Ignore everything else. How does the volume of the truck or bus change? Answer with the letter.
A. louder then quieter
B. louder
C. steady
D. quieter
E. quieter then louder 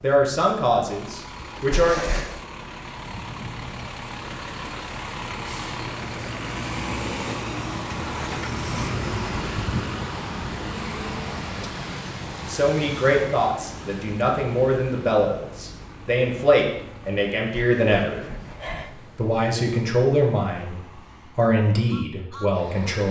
A.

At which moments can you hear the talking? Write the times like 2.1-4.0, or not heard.
0.0-2.0, 12.4-18.2, 18.9-23.0.